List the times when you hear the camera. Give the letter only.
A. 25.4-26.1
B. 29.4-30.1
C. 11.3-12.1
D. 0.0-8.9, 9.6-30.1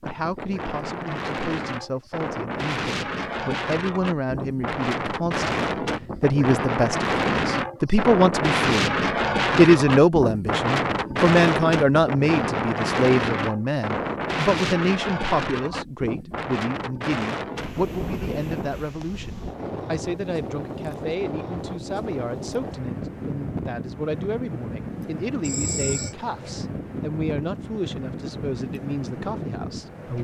A.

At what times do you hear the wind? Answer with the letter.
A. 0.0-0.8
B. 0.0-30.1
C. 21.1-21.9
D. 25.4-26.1
B.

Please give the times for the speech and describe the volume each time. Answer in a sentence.
You can hear the speech from 0.0 to 8.9 s, getting louder; and from 9.6 to 30.1 s, getting quieter.